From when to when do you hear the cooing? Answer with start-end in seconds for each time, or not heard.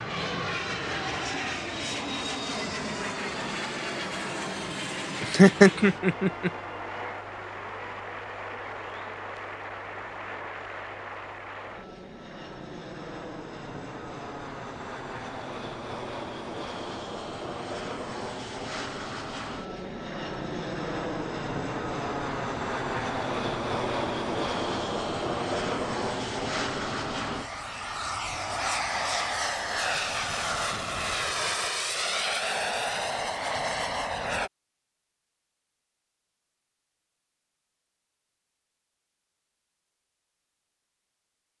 not heard.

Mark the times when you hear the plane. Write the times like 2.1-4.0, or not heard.
0.0-34.5.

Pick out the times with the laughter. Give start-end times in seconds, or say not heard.
5.2-6.5.